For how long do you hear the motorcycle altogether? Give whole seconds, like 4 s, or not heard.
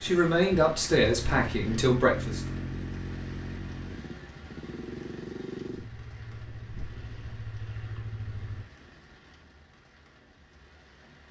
9 s.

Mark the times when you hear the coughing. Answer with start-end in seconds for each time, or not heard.
not heard.